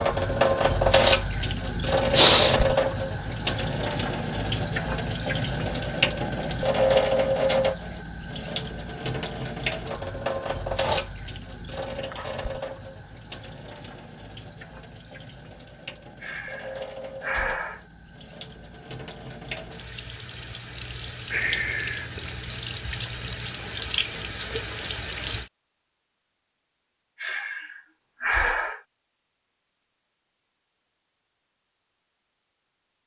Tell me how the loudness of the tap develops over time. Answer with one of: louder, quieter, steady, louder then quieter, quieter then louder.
quieter then louder.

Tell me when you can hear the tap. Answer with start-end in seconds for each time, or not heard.
0.0-25.5.